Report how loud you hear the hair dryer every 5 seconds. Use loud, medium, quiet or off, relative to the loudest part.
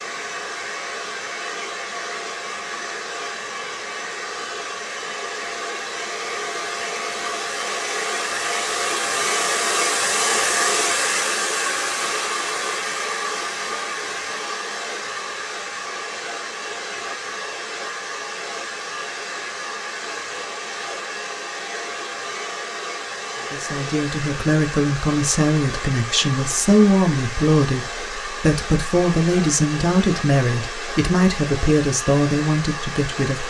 medium, loud, loud, medium, medium, medium, medium.